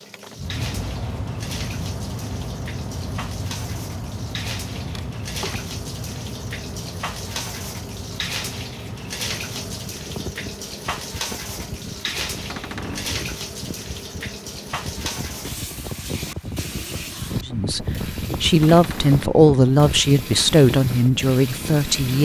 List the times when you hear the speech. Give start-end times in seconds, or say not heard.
17.4-22.2.